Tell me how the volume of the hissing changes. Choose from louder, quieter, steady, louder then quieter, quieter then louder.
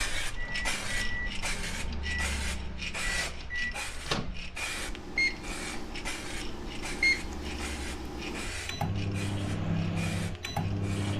quieter.